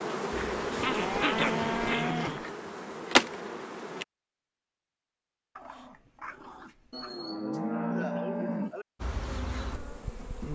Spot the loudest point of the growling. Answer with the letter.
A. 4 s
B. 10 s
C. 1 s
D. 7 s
C.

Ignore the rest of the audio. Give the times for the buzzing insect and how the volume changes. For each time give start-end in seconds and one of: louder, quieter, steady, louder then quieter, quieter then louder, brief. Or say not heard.
0.0-4.0 quieter then louder
9.0-10.4 brief.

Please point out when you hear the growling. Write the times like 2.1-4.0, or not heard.
0.8-2.5, 5.5-7.2.